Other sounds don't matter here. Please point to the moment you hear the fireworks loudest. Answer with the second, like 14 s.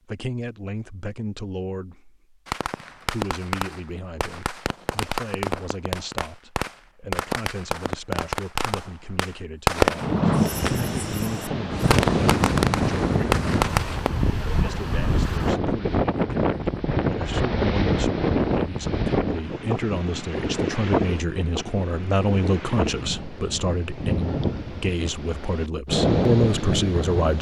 10 s.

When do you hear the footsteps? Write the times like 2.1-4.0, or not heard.
not heard.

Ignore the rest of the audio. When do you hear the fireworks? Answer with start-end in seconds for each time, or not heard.
2.5-14.1.